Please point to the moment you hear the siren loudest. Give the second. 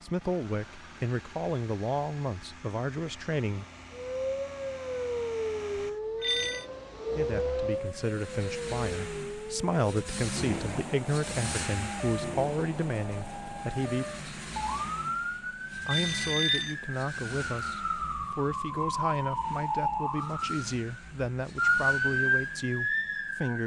22 s.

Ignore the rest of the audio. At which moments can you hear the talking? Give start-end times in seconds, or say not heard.
0.0-3.6, 7.2-14.1, 15.8-23.6.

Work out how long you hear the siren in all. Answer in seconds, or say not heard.
20 s.